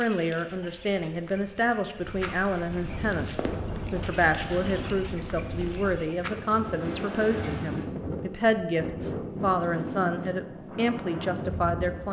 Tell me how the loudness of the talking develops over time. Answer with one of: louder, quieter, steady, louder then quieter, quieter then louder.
steady.